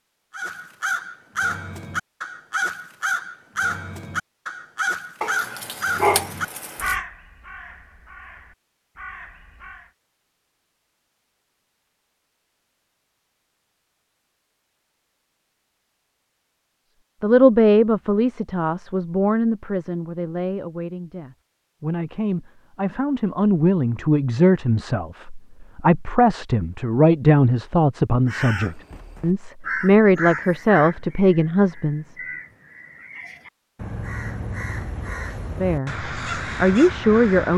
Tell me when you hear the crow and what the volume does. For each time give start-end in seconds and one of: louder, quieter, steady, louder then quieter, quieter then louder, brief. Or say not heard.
0.3-9.9 quieter
28.2-37.5 quieter then louder.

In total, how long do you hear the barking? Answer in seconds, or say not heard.
2 s.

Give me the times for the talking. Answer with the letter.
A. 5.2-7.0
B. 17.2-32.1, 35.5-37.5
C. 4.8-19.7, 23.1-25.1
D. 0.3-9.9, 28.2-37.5
B.